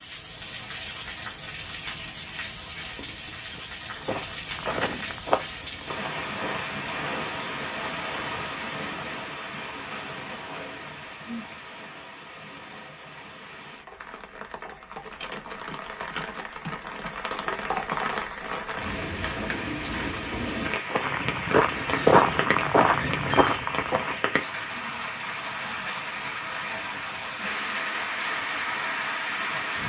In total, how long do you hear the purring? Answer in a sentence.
You can't hear the purring here.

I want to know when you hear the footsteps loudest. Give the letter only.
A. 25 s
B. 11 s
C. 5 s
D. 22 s
D.